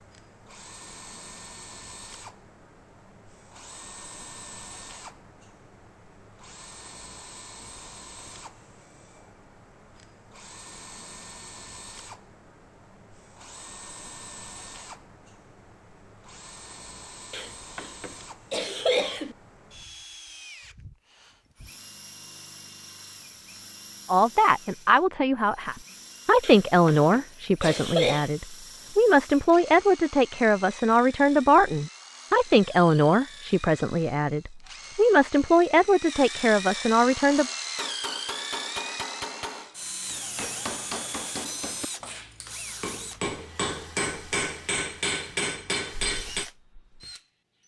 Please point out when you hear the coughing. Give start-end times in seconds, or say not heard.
17.3-19.4, 26.4-28.3.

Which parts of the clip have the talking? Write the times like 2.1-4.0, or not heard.
24.1-37.5.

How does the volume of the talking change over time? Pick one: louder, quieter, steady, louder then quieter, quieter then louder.
steady.